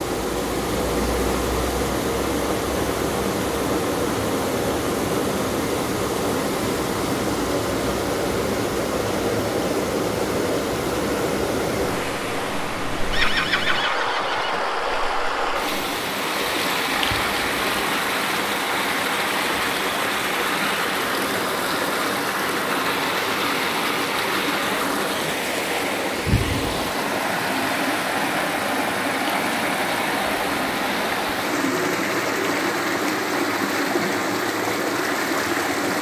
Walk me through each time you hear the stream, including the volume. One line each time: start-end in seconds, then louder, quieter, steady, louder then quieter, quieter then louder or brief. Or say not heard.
0.0-35.9 steady.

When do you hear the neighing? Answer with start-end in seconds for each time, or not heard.
13.1-14.6.